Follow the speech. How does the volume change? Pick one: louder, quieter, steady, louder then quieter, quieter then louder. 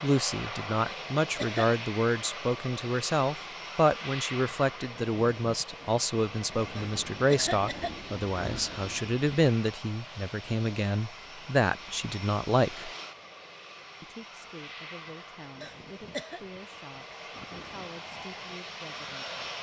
quieter.